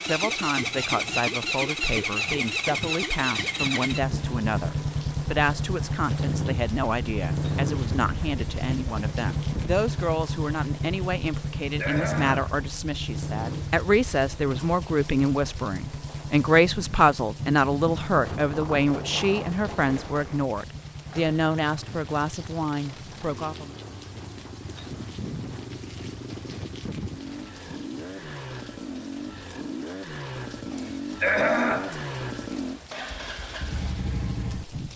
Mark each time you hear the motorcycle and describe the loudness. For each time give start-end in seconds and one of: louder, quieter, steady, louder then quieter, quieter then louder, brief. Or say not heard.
0.0-34.9 quieter then louder.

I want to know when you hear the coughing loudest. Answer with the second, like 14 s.
31 s.